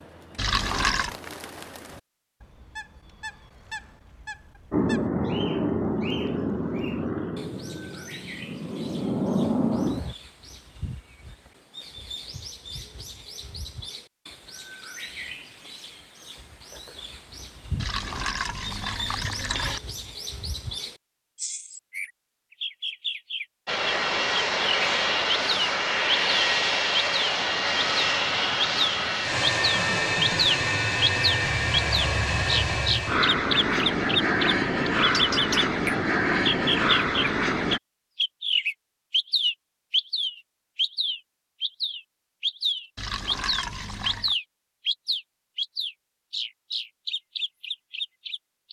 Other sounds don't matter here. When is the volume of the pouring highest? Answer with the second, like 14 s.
1 s.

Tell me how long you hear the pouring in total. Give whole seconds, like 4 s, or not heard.
4 s.